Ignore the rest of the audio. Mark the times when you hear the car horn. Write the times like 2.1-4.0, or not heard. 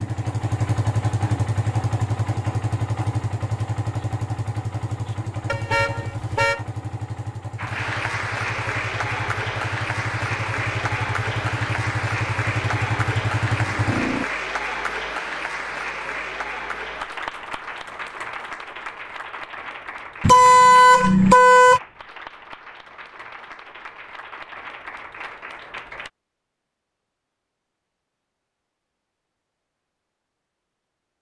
5.5-6.7, 20.2-21.8.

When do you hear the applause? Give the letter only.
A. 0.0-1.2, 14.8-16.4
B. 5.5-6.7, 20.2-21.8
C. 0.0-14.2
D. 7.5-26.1
D.